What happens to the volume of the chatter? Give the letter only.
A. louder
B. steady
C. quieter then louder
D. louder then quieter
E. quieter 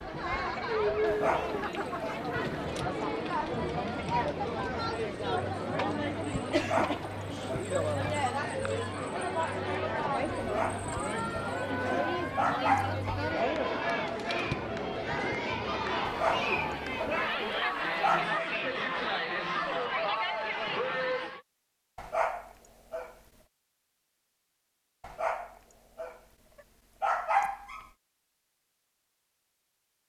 B.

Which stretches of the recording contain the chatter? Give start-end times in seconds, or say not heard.
0.0-21.4.